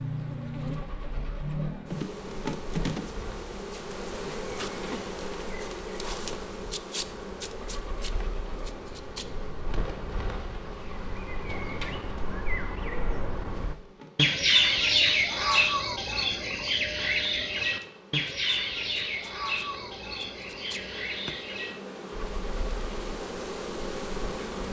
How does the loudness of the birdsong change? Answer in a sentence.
The loudness of the birdsong goes up, then down.